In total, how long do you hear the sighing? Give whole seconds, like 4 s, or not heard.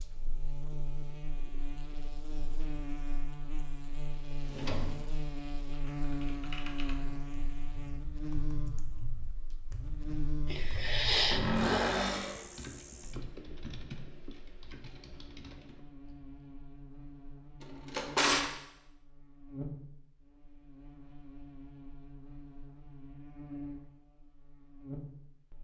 2 s.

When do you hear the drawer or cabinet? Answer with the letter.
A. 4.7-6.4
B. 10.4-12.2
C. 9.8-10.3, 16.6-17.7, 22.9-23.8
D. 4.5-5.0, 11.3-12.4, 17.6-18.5
D.